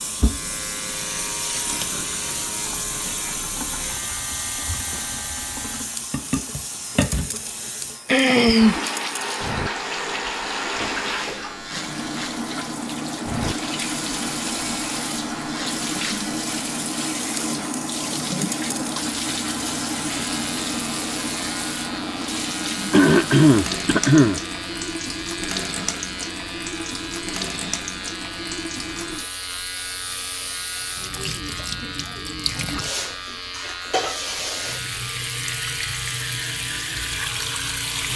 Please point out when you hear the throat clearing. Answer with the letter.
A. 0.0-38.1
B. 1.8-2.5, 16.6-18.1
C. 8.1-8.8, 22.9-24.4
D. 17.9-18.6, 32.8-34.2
C.